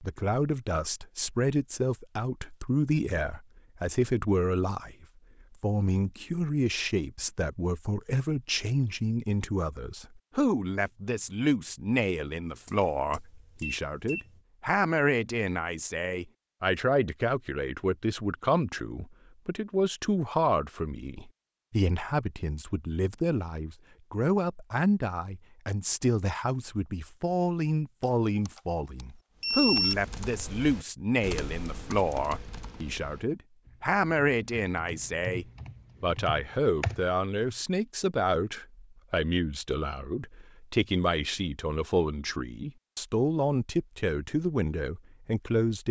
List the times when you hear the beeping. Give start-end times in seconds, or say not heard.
12.7-14.2, 28.0-29.9.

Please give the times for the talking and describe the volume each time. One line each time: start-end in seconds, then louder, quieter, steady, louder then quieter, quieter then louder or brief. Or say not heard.
0.0-45.8 steady.